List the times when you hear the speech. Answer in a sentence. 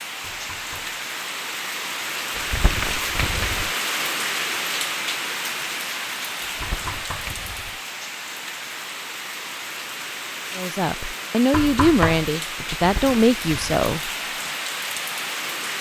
You can hear the speech from 10.6 to 14.1 s.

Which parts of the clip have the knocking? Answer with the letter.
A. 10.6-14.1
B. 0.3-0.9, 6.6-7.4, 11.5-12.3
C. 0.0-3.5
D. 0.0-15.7
B.